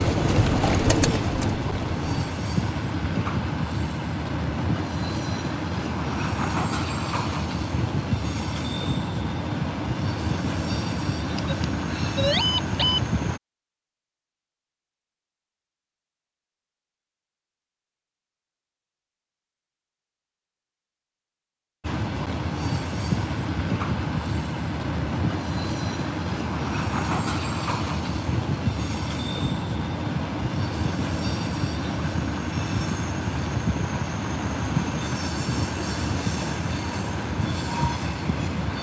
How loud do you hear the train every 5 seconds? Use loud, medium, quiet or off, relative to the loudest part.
loud, loud, loud, off, loud, loud, loud, loud.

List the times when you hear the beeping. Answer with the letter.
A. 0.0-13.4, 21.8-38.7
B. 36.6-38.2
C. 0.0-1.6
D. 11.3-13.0
D.